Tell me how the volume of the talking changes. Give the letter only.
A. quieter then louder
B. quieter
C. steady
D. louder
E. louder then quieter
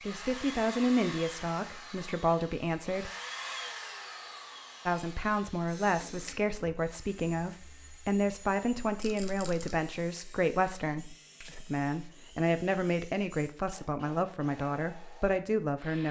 C.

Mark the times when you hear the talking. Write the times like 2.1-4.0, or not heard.
0.0-3.1, 4.8-16.0.